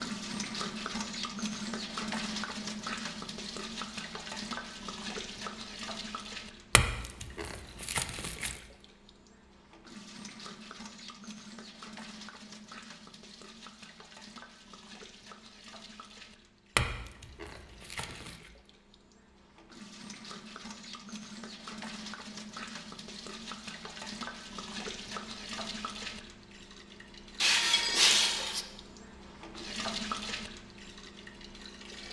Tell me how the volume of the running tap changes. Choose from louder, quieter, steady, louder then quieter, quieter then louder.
quieter then louder.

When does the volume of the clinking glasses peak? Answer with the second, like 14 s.
28 s.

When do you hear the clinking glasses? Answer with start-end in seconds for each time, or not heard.
6.8-8.6, 16.8-18.4, 27.4-28.6.